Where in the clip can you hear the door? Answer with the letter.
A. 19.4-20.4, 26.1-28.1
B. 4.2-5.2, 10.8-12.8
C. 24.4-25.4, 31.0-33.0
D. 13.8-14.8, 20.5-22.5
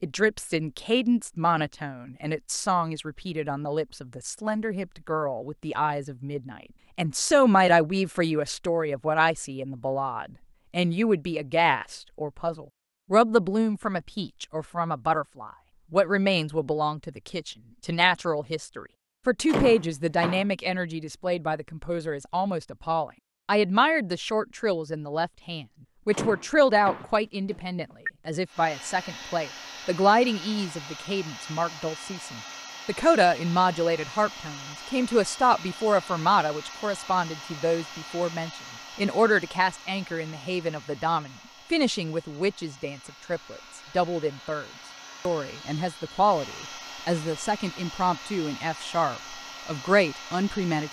A.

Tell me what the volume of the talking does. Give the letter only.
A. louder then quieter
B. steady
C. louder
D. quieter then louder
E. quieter
B.